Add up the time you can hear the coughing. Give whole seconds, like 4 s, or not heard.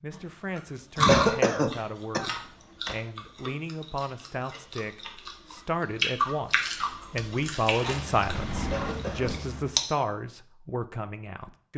2 s.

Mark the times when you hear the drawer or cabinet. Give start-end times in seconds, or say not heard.
2.2-3.0, 8.2-8.9.